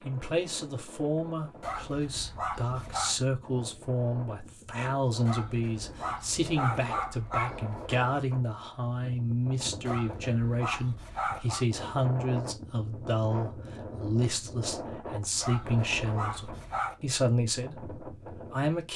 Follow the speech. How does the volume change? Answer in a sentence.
The volume of the speech stays about the same.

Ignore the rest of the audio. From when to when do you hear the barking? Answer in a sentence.
You can hear the barking from 1.6 to 3.1 s, from 5.2 to 8.0 s, from 9.8 to 11.7 s and from 15.4 to 17.0 s.